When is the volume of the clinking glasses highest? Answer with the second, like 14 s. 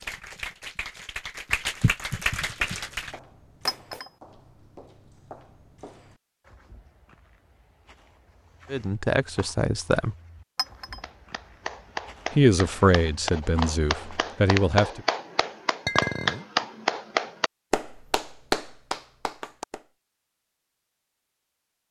16 s.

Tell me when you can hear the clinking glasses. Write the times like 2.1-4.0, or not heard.
3.6-4.1, 10.6-11.0, 15.8-16.4.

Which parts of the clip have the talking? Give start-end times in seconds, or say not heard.
8.7-10.2, 12.3-15.0.